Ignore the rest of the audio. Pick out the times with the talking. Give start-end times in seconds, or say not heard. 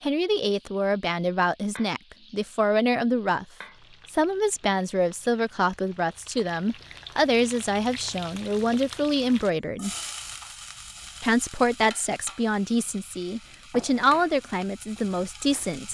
0.0-3.5, 4.1-9.9, 11.2-15.8.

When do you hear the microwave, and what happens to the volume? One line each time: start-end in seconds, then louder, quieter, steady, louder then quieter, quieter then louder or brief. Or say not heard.
not heard.